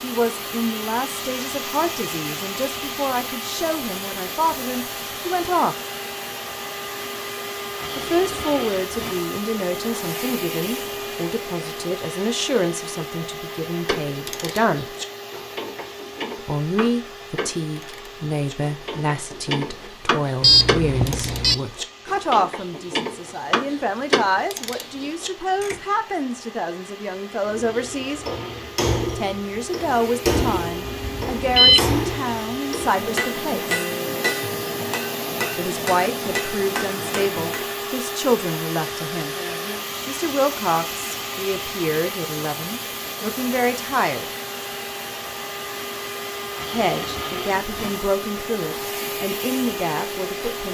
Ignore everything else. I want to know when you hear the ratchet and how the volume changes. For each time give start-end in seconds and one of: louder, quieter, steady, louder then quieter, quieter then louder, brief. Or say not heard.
13.8-25.8 louder.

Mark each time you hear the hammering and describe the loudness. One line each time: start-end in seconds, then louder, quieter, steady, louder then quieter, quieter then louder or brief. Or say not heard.
27.4-37.8 steady.